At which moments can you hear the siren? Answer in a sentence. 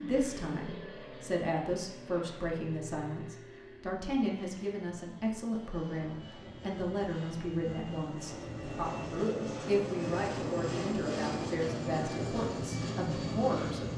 The siren can't be heard in this clip.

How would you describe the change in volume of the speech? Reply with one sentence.
The volume of the speech stays about the same.